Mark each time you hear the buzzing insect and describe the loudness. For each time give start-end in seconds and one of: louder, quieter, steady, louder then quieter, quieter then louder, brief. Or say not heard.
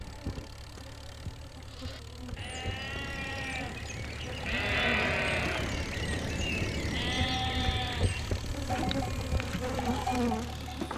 0.0-10.9 louder.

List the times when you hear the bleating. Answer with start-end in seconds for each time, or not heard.
1.7-10.7.